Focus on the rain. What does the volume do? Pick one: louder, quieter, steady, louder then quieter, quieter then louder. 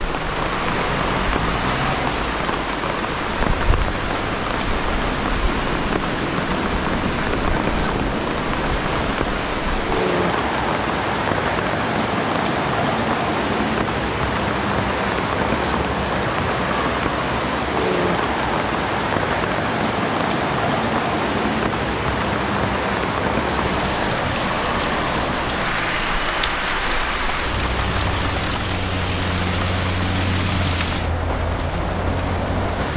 steady.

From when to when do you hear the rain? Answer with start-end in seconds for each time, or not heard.
0.0-32.9.